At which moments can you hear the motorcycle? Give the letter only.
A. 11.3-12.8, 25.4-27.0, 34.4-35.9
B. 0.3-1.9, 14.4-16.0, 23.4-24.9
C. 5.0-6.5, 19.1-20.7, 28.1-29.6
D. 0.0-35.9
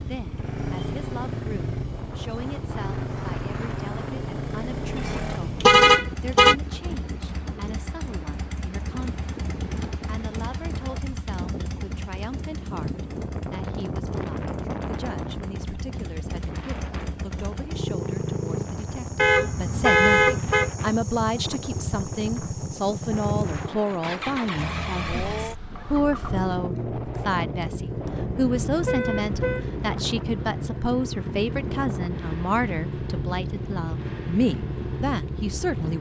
D.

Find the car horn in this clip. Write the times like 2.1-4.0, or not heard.
5.0-6.5, 19.1-20.7, 28.1-29.6.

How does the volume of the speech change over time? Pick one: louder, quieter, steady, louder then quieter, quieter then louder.
louder.